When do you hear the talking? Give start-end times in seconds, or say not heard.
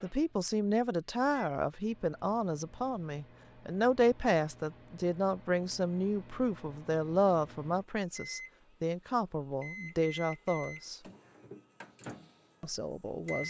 0.0-11.0, 12.6-13.4.